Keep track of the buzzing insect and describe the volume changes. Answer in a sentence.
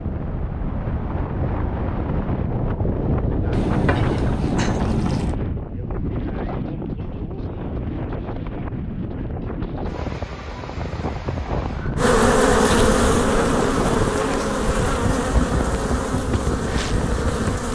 The loudness of the buzzing insect goes down.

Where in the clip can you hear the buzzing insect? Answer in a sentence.
The buzzing insect can be heard from 11.9 to 17.7 s.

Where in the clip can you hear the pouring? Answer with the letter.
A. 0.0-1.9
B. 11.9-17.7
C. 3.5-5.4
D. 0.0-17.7
C.